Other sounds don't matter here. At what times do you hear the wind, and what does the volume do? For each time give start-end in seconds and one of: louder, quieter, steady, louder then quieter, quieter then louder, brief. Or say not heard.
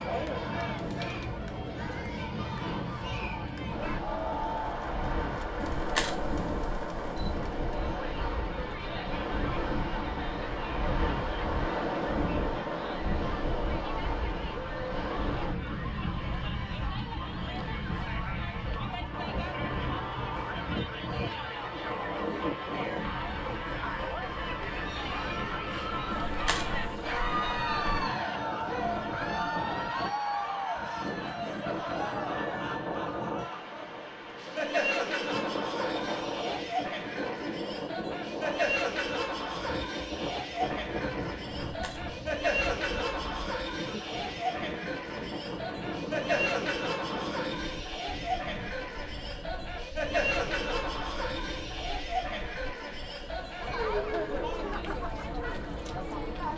0.0-56.5 quieter.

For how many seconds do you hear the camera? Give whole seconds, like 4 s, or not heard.
4 s.